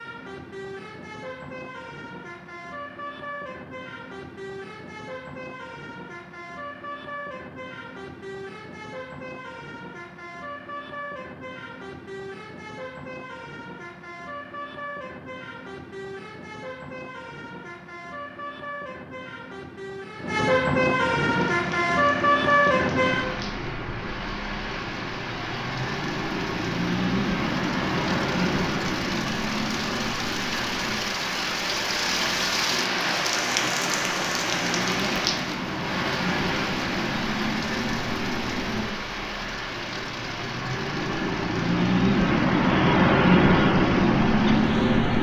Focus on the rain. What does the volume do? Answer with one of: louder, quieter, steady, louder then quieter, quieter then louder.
louder then quieter.